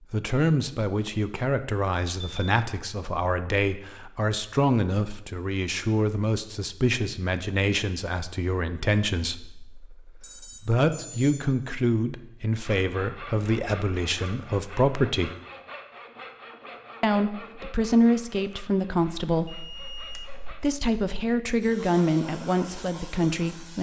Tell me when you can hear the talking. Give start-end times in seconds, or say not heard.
0.1-15.3, 17.0-23.7.